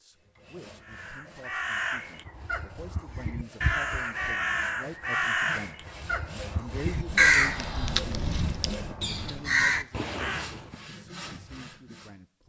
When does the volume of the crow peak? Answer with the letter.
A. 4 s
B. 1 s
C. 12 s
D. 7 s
D.